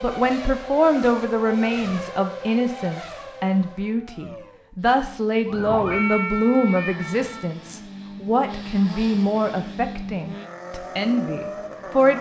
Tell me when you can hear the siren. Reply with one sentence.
You can hear the siren from 5.5 to 7.5 s.